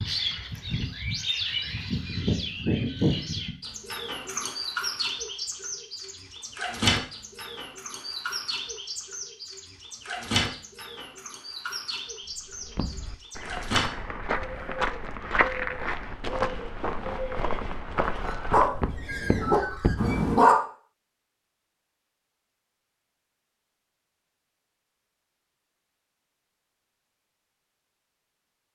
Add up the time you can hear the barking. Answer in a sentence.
You can hear the barking for 2 seconds altogether.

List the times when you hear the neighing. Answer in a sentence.
You can't hear the neighing here.